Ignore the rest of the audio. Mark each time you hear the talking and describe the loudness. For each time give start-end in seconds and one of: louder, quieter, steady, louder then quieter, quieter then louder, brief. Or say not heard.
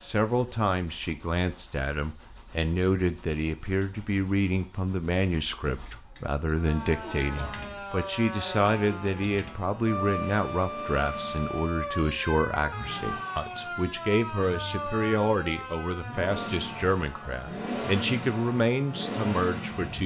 0.0-20.0 steady.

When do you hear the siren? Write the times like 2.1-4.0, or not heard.
6.5-20.0.